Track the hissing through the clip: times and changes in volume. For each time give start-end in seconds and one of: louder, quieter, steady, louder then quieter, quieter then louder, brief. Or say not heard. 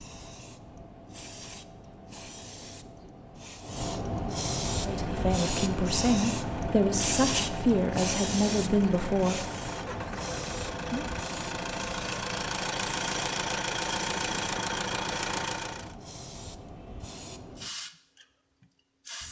0.0-19.2 louder then quieter.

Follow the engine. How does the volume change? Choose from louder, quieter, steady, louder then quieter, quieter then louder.
louder.